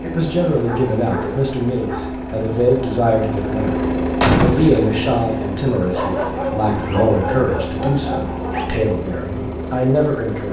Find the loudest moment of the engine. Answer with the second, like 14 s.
4 s.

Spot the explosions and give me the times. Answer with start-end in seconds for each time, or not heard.
4.2-4.9.